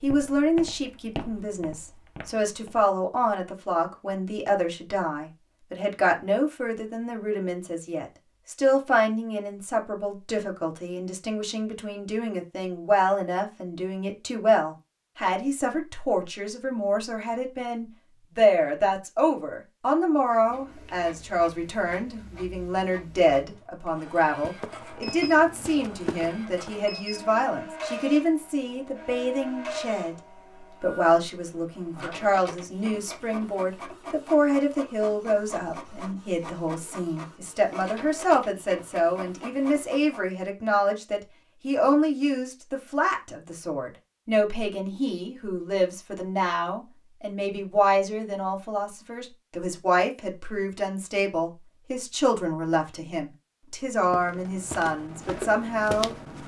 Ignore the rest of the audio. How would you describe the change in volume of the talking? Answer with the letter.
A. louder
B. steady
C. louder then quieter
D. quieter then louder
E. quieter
B.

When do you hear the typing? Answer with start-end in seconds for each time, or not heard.
not heard.